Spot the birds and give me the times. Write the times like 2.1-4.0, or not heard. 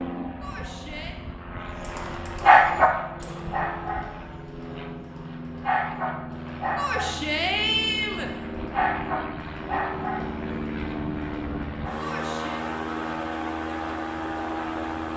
not heard.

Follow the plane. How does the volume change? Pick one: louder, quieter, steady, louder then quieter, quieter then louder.
louder.